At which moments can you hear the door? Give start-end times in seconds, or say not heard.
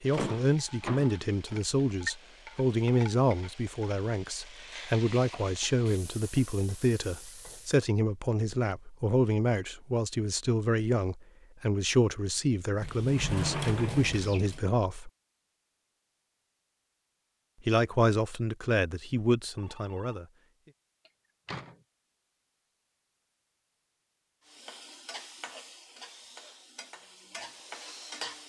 0.1-2.1, 12.8-14.7, 21.1-21.8.